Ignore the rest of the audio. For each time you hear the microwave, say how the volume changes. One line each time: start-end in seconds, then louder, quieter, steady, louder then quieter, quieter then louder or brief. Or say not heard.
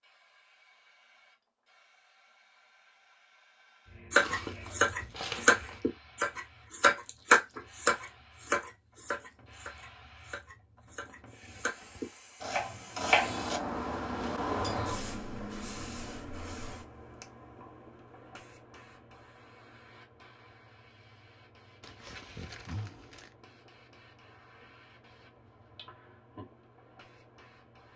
not heard.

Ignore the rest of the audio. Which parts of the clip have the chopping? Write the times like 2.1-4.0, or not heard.
4.1-13.6.